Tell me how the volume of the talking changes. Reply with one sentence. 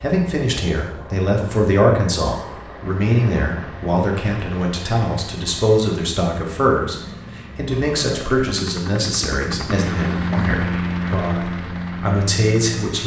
The loudness of the talking stays about the same.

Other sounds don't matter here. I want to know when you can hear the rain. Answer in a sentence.
You can't hear the rain here.